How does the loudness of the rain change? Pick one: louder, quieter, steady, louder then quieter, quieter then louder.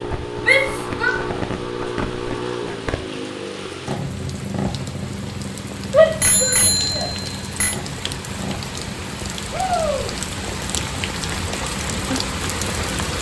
louder.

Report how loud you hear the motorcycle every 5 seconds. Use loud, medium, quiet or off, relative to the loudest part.
loud, medium, medium.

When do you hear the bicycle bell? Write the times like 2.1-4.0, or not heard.
6.2-7.8.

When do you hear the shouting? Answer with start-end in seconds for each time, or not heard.
0.4-1.1, 5.9-7.1, 9.5-10.1.